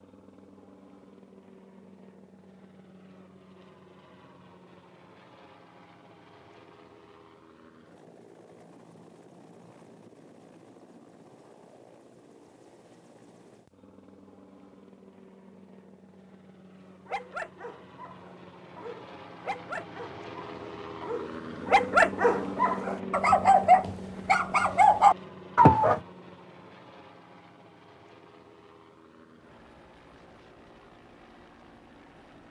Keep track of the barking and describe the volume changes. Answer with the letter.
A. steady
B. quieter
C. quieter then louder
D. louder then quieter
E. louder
E.